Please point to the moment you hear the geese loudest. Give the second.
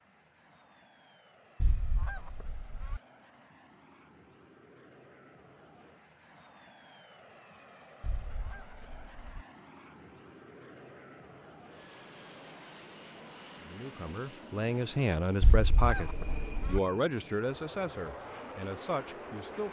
16 s.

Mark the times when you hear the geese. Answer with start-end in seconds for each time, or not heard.
1.6-3.0, 8.0-9.4, 15.4-16.8.